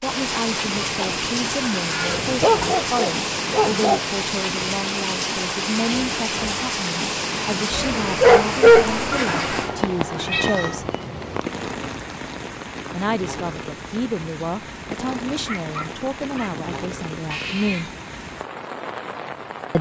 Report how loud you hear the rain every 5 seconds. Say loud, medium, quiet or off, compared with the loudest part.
loud, loud, medium, medium.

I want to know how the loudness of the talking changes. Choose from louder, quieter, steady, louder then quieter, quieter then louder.
steady.